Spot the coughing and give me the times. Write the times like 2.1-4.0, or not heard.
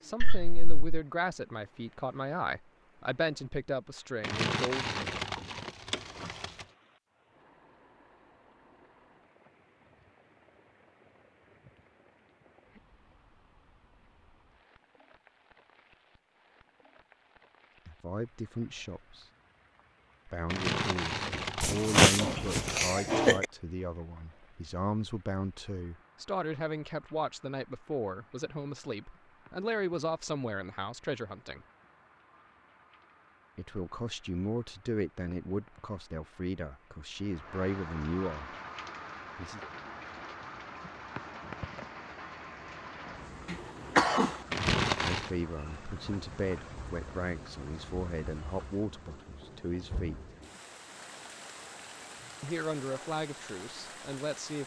0.2-0.9, 21.6-23.4, 43.5-44.3.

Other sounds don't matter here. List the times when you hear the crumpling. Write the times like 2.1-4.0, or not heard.
4.2-6.7, 20.4-22.7, 44.5-45.3.